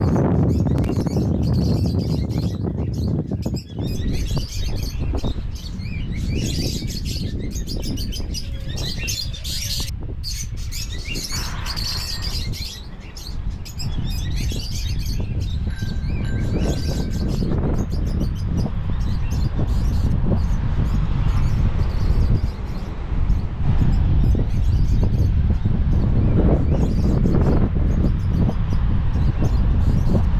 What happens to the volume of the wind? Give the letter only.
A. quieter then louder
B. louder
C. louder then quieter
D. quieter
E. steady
A.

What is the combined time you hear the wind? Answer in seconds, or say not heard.
30 s.